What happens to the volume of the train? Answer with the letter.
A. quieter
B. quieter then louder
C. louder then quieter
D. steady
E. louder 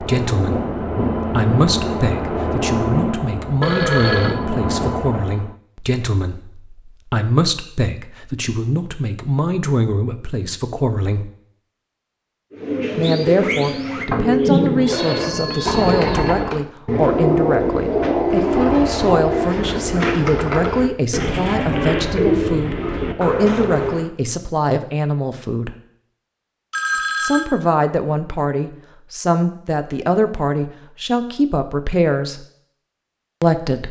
B.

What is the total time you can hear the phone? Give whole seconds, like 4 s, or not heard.
3 s.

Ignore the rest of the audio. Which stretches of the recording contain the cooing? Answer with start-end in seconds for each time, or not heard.
12.5-24.1.